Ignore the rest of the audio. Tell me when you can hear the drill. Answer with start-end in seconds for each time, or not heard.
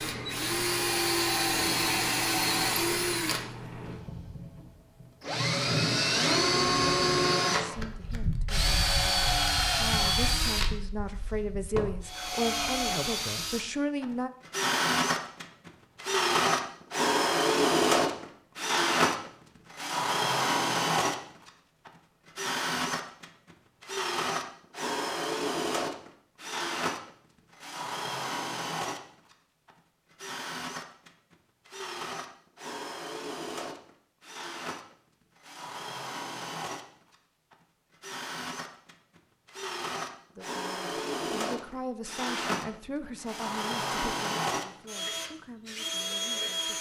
0.0-46.7.